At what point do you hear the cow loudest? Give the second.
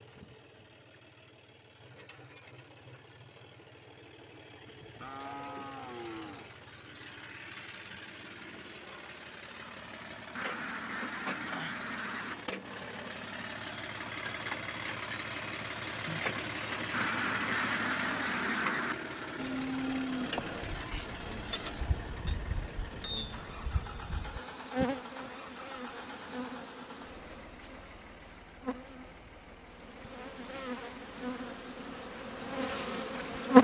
20 s.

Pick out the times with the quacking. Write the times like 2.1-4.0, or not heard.
10.3-12.3, 16.9-18.9.